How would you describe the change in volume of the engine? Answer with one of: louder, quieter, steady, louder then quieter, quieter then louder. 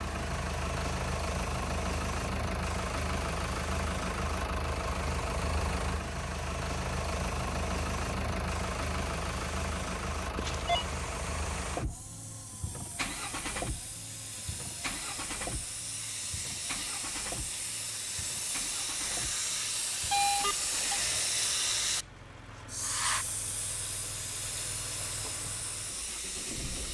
quieter.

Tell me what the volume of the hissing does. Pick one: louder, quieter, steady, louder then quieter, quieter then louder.
louder.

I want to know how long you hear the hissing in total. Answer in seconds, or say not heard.
27 s.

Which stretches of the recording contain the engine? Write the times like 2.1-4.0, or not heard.
0.0-26.9.